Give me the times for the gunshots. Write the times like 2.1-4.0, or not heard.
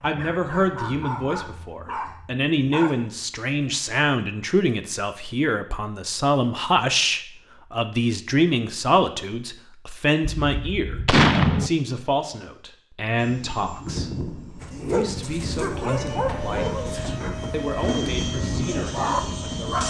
10.4-11.7.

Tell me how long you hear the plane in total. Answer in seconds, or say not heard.
7 s.